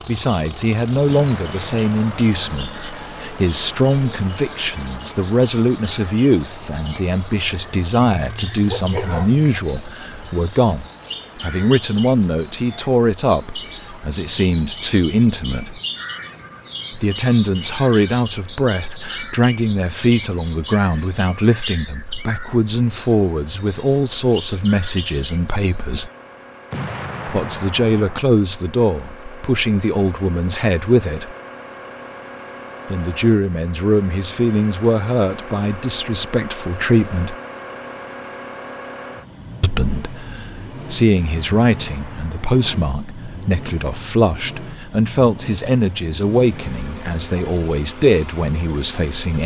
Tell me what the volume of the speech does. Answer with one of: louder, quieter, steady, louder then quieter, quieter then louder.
steady.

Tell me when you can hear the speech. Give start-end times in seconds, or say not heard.
0.1-15.8, 16.9-26.1, 27.2-31.4, 32.9-37.4, 39.6-49.4.